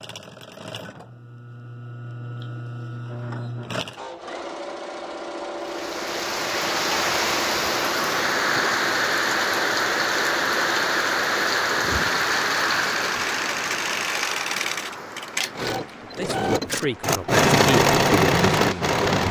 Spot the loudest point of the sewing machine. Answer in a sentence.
The volume of the sewing machine peaks at 18 seconds.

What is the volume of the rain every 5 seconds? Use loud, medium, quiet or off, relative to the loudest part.
off, loud, loud, quiet.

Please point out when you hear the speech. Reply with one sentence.
The speech can be heard from 16.0 to 19.2 s.